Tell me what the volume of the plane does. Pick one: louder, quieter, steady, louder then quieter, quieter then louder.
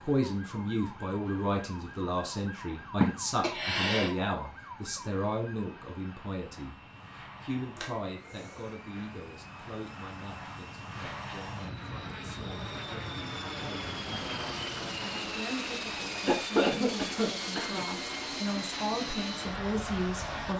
louder.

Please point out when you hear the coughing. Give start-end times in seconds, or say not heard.
3.0-4.1, 7.8-8.7, 16.2-17.8.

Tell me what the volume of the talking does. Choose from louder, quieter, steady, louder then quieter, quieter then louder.
quieter then louder.